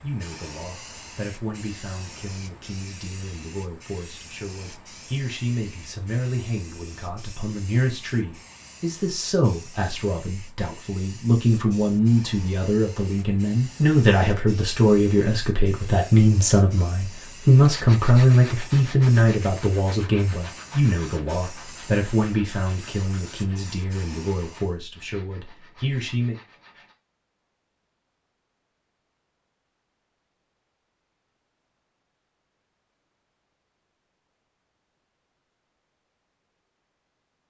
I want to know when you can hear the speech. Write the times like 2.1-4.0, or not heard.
0.0-26.4.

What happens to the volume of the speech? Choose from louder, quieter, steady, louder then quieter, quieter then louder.
louder then quieter.